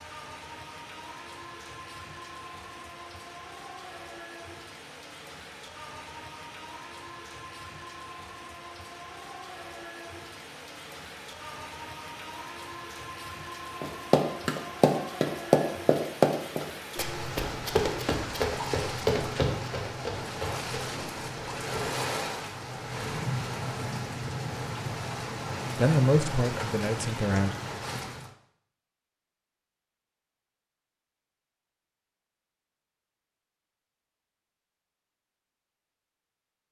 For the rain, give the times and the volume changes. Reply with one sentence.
The rain can be heard from 0.0 to 28.4 s, getting louder.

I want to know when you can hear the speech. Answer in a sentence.
You can hear the speech from 25.8 to 27.5 s.